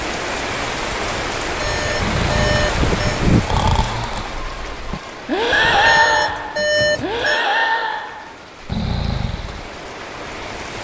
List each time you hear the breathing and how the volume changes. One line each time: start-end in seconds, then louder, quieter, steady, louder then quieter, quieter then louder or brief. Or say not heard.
1.9-9.7 louder then quieter.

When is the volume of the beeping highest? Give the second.
7 s.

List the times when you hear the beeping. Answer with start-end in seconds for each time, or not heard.
1.6-3.2, 5.8-7.4.